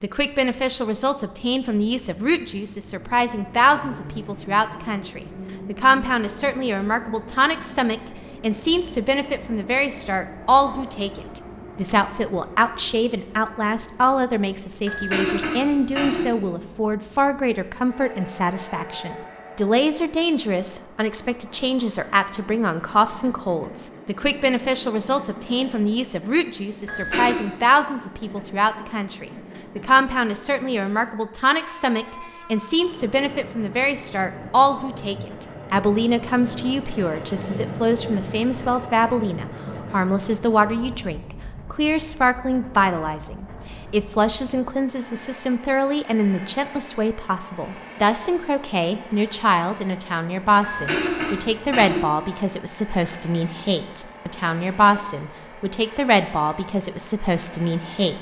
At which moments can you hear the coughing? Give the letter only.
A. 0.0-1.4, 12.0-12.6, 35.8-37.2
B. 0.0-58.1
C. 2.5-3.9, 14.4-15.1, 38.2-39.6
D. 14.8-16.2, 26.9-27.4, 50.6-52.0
D.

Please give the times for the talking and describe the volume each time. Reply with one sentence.
The talking can be heard from 0.0 to 58.1 s, at a steady volume.